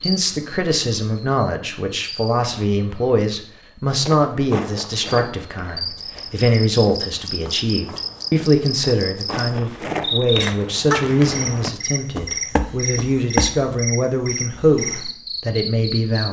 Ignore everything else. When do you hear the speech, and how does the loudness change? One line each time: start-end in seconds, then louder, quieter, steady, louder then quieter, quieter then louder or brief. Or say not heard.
0.0-16.2 steady.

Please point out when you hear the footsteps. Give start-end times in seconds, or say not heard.
4.0-13.6.